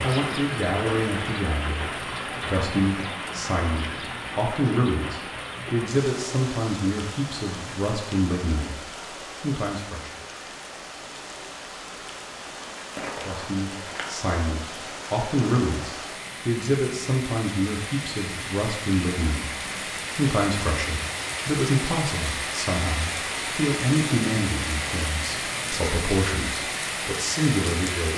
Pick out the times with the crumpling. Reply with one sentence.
You can hear the crumpling from 12.9 to 14.1 s.